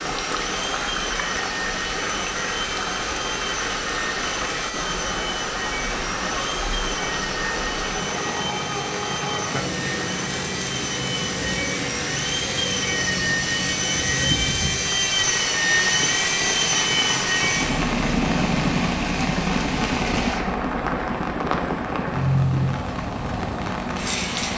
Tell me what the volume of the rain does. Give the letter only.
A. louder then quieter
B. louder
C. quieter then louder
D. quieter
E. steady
E.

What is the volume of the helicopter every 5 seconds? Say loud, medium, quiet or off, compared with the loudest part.
medium, medium, loud, loud, medium.